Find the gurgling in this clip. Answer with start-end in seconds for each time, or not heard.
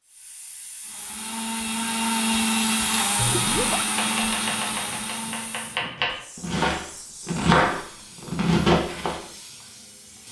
3.4-4.0.